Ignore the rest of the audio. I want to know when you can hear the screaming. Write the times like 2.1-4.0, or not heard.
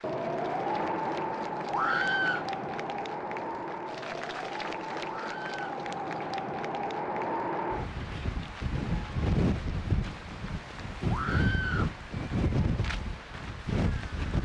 1.7-2.5, 5.0-5.8, 11.1-11.9.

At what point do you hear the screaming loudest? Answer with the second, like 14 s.
2 s.